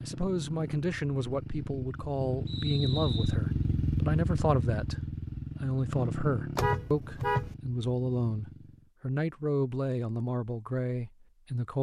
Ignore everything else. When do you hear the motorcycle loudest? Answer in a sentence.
The loudest moment of the motorcycle is at 4 seconds.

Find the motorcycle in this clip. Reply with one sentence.
You can hear the motorcycle from 0.0 to 8.9 s.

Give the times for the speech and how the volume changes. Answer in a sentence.
The speech can be heard from 0.0 to 11.7 s, at a steady volume.